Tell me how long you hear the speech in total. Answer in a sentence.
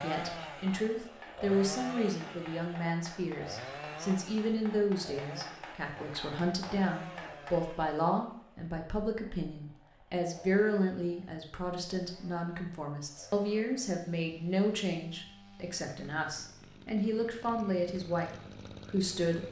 You can hear the speech for 19 seconds altogether.